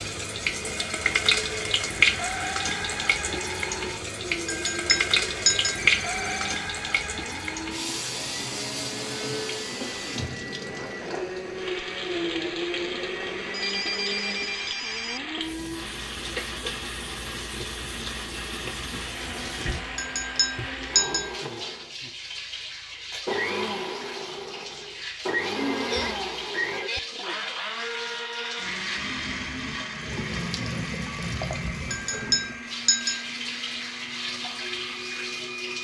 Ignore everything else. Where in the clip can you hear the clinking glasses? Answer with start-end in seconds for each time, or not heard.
4.5-5.8, 19.9-21.3, 31.9-33.2.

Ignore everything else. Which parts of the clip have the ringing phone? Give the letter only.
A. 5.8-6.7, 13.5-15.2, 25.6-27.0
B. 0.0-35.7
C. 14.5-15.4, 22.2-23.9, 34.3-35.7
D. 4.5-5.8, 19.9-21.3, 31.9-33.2
A.